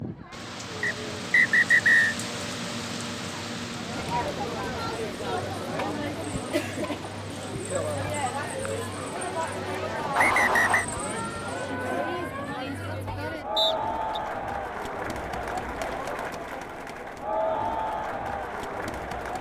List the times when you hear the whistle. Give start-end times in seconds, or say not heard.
0.8-2.1, 10.2-10.8, 13.6-14.2.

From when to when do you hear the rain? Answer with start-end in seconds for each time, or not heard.
0.0-11.8.